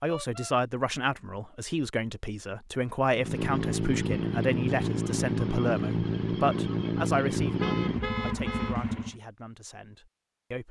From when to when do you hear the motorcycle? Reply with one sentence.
The motorcycle can be heard from 3.1 to 9.2 s.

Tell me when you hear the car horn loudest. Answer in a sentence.
The loudest moment of the car horn is at 8 seconds.